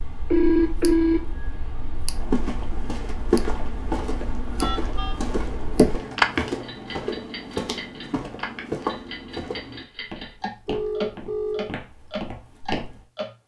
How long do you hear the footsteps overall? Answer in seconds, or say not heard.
11 s.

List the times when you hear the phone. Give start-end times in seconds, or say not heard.
0.3-2.1, 4.6-5.2, 10.7-11.7.